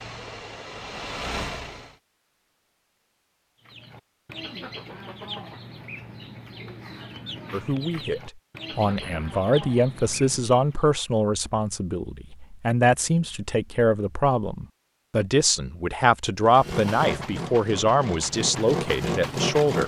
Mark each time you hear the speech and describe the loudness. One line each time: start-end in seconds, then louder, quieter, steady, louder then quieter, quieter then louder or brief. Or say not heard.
7.5-19.8 steady.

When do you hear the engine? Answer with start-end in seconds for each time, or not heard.
0.0-1.9, 16.4-19.8.